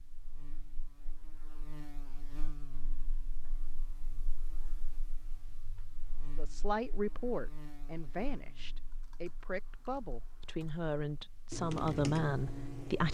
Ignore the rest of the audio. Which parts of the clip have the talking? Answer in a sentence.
You can hear the talking from 6.3 to 13.0 s.